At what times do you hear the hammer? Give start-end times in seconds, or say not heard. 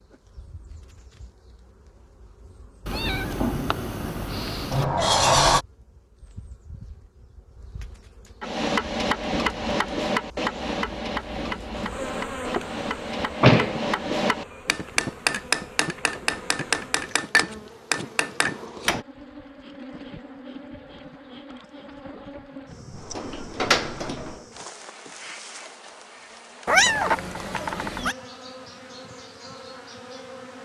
8.4-19.1.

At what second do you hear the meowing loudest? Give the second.
27 s.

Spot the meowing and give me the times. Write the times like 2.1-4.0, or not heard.
2.9-4.8, 26.6-28.1.